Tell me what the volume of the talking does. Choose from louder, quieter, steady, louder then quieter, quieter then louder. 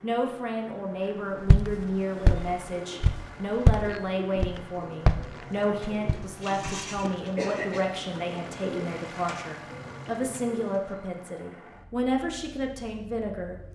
steady.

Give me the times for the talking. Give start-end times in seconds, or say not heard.
0.0-13.6.